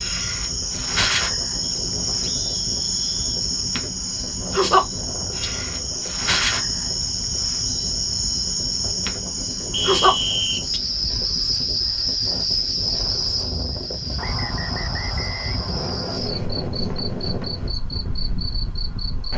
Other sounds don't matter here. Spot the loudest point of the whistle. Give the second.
10 s.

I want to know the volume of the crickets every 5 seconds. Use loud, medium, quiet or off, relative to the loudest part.
loud, loud, loud, medium.